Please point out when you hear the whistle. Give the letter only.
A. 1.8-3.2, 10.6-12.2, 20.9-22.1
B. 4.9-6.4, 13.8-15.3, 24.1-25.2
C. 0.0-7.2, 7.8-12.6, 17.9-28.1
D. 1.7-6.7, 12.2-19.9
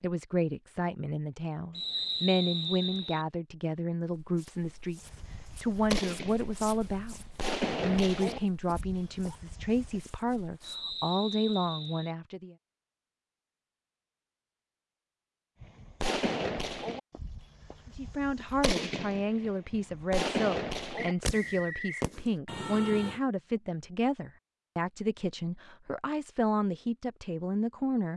A.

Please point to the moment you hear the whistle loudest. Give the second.
2 s.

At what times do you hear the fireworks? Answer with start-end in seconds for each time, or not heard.
5.0-10.0, 15.6-23.2.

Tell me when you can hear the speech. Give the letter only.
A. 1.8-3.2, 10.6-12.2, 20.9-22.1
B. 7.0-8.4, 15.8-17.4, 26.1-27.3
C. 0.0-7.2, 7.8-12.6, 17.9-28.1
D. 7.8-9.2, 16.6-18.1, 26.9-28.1
C.